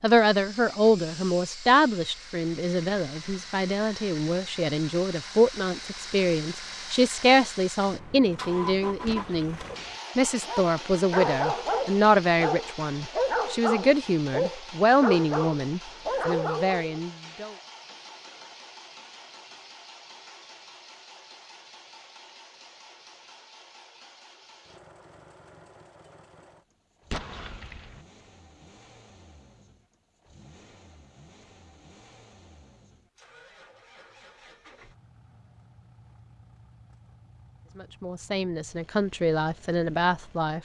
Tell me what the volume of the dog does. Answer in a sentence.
The volume of the dog stays about the same.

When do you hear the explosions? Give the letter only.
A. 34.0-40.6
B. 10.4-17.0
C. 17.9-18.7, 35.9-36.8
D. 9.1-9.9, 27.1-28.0
D.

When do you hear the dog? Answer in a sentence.
The dog can be heard from 10.4 to 17.0 s.